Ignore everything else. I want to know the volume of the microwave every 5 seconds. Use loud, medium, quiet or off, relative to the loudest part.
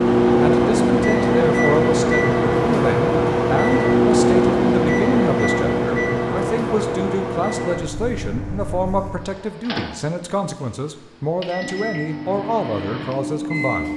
loud, medium, quiet.